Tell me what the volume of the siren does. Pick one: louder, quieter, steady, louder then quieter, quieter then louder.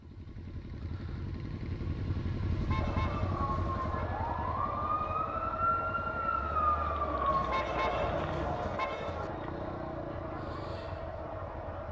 louder.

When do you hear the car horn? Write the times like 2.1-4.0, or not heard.
2.5-4.0, 7.2-9.3.